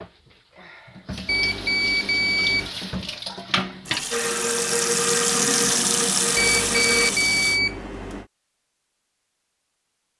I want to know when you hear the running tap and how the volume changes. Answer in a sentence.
You can hear the running tap from 0.0 to 7.6 s, getting louder.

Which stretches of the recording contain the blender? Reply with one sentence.
You can hear the blender from 4.1 to 7.2 s.